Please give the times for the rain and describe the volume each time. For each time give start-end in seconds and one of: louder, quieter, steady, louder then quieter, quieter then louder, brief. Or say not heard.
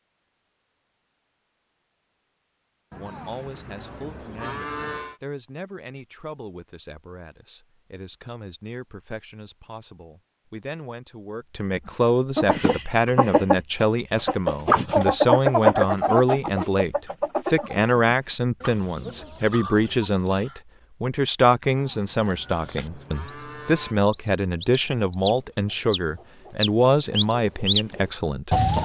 not heard.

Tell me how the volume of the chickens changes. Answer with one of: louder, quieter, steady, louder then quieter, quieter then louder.
quieter then louder.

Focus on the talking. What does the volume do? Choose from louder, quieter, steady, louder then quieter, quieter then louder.
louder.